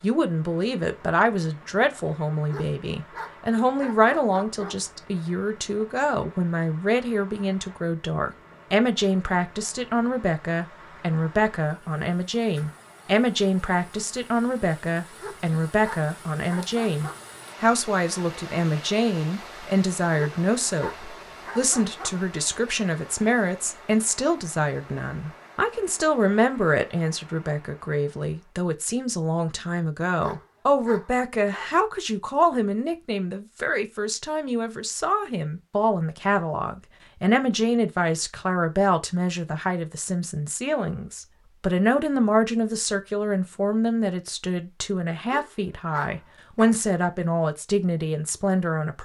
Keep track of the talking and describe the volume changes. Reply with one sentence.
The volume of the talking stays about the same.